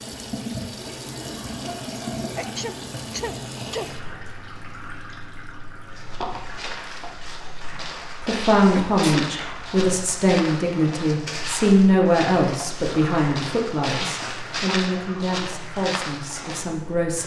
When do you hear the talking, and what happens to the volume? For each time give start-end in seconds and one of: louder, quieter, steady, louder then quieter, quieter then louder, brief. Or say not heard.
8.2-17.2 quieter.